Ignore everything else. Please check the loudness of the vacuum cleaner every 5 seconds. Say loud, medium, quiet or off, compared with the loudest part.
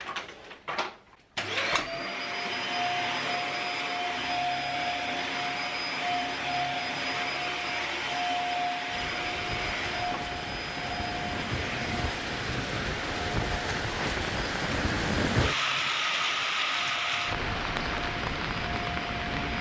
loud, loud, medium, medium.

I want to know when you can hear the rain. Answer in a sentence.
You can hear the rain from 8.8 to 19.5 s.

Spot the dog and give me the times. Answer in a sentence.
You can't hear the dog here.